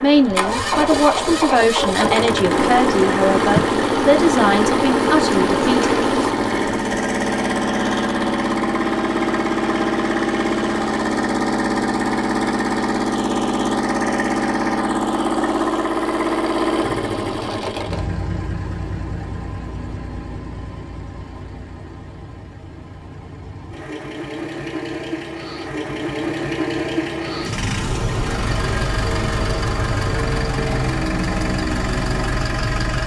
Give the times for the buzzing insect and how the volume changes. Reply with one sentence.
You can hear the buzzing insect from 0.0 to 6.3 s, getting louder.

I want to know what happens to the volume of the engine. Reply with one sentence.
The volume of the engine goes down, then up.